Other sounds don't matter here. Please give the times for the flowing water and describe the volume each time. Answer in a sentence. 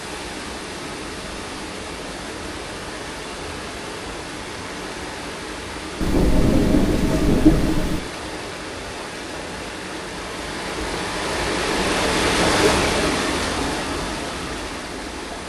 You can hear the flowing water from 0.0 to 15.4 s, getting louder.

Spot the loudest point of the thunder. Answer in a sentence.
The volume of the thunder peaks at 7 seconds.